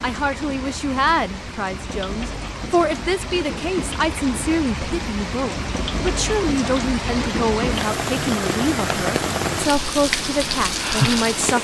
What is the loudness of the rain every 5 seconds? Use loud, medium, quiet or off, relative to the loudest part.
medium, loud, loud.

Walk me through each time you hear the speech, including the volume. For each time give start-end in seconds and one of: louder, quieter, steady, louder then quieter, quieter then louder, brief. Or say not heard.
0.0-11.5 steady.